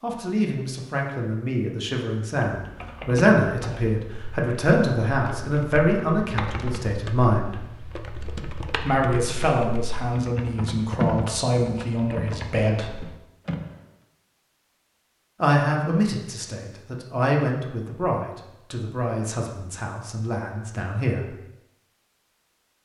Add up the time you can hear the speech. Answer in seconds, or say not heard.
18 s.